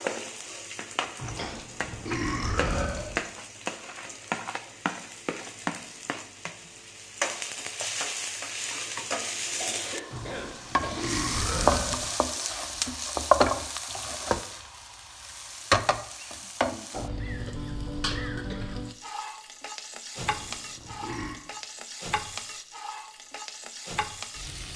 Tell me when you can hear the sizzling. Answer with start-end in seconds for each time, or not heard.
0.0-24.7.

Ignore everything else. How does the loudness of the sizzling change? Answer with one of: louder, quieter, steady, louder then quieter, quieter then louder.
louder then quieter.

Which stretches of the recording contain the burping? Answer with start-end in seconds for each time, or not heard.
1.1-3.1, 10.1-12.1, 20.1-21.4.